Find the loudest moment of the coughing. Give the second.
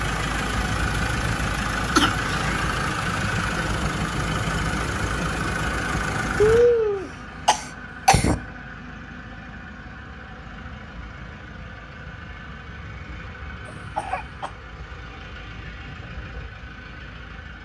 7 s.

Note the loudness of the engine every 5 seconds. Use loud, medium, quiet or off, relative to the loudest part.
loud, medium, quiet, quiet.